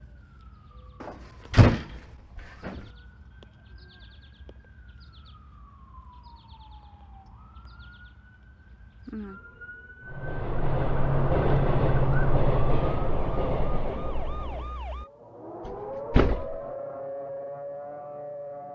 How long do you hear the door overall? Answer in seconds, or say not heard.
3 s.